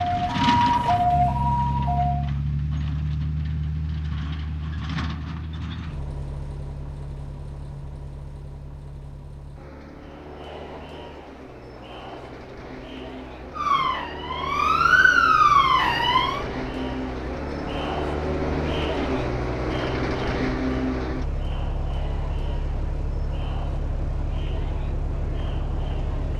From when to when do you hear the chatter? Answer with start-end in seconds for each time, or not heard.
9.9-26.3.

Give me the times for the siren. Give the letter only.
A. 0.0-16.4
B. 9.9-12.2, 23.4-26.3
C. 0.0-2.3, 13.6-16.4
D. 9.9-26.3
C.